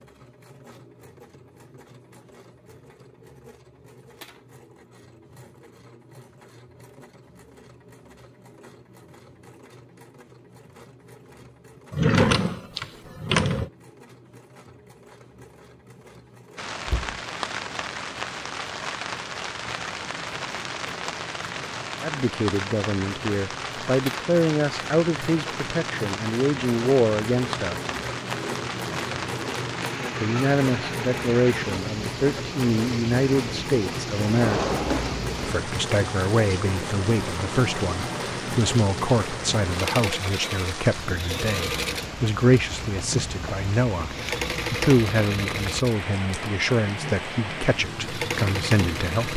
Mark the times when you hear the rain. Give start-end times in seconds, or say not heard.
16.6-49.3.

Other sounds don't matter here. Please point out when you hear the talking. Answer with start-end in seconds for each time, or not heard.
22.0-27.8, 30.2-34.6, 35.4-49.3.